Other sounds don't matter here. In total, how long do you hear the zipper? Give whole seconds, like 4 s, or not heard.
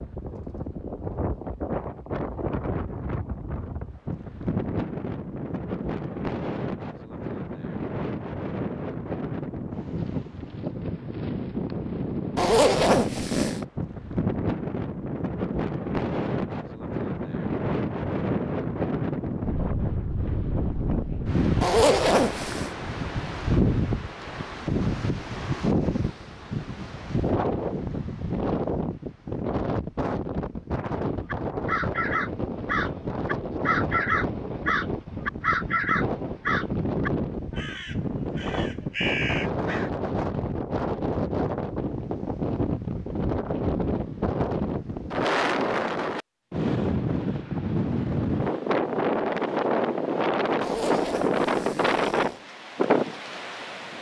4 s.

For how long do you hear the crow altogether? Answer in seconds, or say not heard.
9 s.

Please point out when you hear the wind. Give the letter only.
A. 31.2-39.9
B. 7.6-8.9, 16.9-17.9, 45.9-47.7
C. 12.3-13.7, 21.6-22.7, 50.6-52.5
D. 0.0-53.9
D.